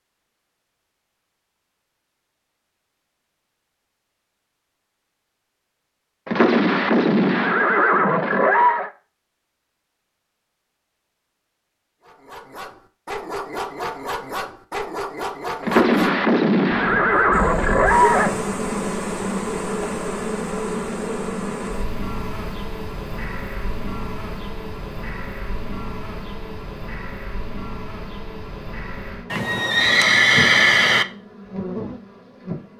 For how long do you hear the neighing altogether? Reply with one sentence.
You can hear the neighing for 7 seconds altogether.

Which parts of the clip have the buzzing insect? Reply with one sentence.
You can hear the buzzing insect from 17.3 to 32.7 s.